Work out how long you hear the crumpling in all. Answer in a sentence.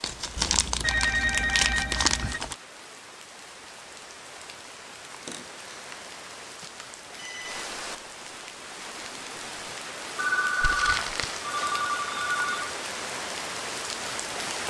You can hear the crumpling for 4 seconds altogether.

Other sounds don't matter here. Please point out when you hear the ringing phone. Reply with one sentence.
The ringing phone can be heard from 0.3 to 2.4 s, from 5.7 to 7.7 s and from 10.2 to 12.8 s.